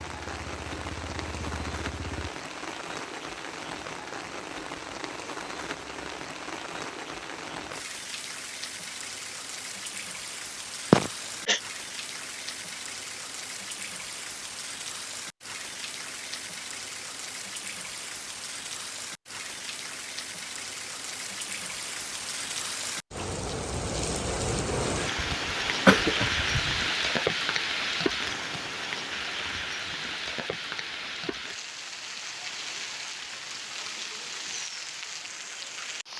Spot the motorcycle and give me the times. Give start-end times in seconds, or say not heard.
0.0-2.3.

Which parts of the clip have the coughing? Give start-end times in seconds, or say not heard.
10.9-11.6, 25.1-26.9.